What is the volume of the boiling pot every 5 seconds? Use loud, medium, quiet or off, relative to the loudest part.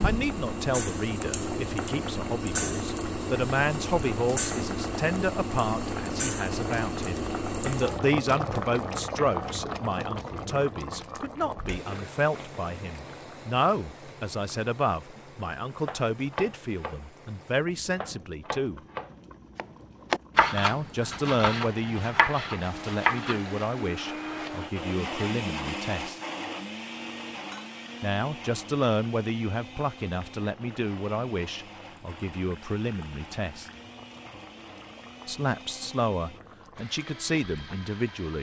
loud, loud, medium, quiet, quiet, quiet, quiet, quiet.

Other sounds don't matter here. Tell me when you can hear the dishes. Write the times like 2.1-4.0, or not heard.
not heard.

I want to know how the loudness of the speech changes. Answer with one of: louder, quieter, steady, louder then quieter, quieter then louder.
steady.